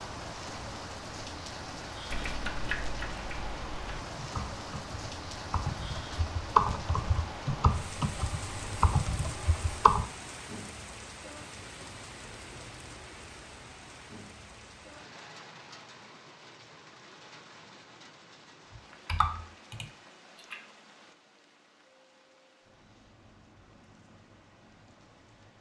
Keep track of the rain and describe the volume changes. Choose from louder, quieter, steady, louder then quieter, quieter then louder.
quieter.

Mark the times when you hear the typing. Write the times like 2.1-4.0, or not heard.
2.1-10.1, 18.8-20.6.